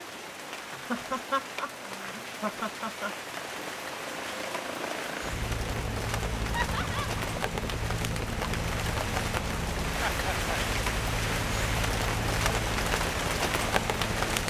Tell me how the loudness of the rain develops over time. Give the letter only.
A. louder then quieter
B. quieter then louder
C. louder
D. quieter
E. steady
C.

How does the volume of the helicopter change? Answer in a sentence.
The loudness of the helicopter goes up.